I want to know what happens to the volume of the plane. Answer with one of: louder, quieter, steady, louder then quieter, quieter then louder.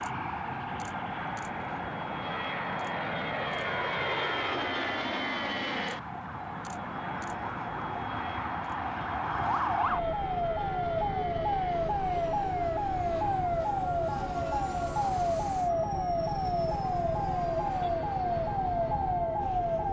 quieter.